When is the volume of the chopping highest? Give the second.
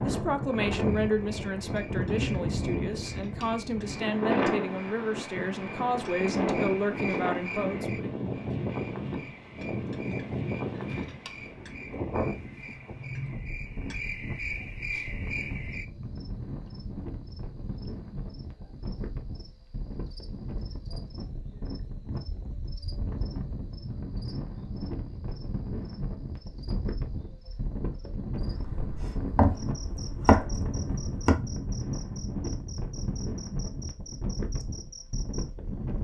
30 s.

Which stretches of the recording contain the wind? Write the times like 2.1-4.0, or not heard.
0.0-36.0.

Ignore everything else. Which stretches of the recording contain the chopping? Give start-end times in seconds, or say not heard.
28.6-31.4.